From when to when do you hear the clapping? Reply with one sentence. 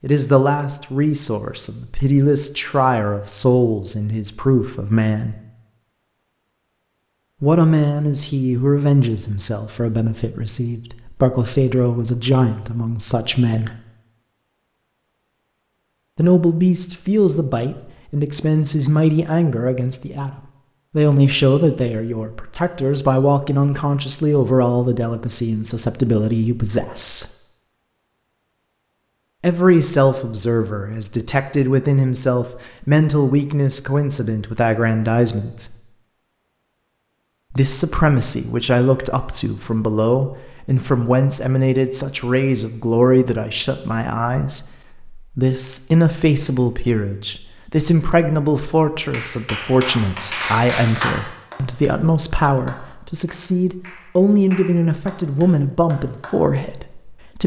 You can hear the clapping from 49.1 to 56.5 s.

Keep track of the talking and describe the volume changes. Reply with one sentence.
The volume of the talking stays about the same.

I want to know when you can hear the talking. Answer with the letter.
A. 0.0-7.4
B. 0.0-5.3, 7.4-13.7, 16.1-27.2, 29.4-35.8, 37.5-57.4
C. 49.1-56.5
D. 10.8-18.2
B.